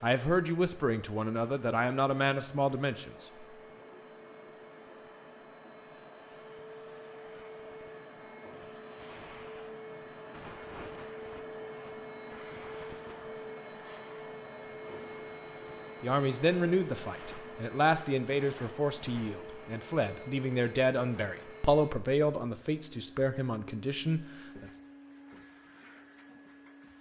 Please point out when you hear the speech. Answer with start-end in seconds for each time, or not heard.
0.0-3.5, 16.0-24.7.